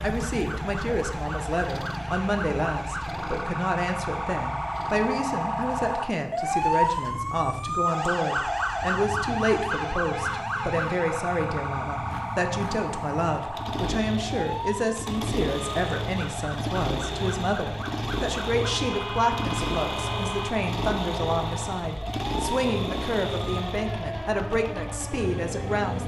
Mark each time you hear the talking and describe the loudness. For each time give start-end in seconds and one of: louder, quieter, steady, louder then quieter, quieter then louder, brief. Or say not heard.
0.0-26.0 steady.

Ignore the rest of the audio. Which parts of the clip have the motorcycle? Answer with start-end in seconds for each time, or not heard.
0.0-26.0.